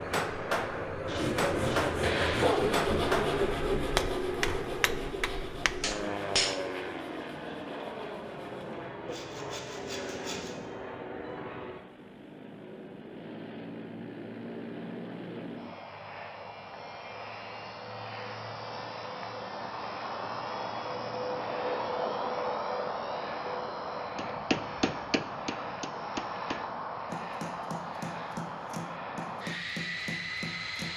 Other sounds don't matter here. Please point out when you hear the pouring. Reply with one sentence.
The pouring can't be heard in this clip.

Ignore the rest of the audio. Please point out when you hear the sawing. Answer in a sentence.
You can hear the sawing from 1.1 to 10.7 s.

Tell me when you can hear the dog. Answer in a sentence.
You can hear the dog from 1.1 to 2.8 s.